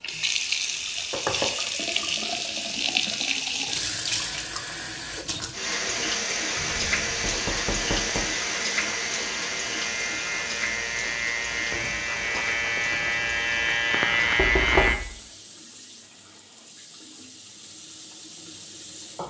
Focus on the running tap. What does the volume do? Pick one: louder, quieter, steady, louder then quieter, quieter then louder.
quieter.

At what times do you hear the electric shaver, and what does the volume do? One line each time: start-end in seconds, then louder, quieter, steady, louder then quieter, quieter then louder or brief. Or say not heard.
5.7-14.9 louder.